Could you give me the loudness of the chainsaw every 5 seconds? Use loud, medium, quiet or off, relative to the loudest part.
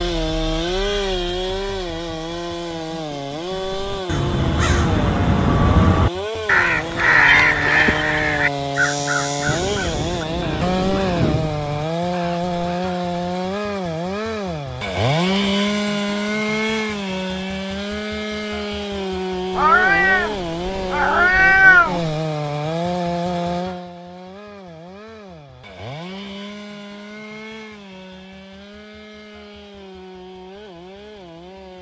loud, loud, loud, loud, loud, quiet, quiet.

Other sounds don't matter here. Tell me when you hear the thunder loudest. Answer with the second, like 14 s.
11 s.